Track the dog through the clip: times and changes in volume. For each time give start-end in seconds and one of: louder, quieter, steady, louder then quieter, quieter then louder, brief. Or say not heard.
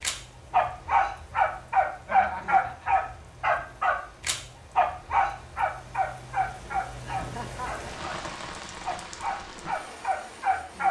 0.0-8.2 quieter
8.8-10.8 brief.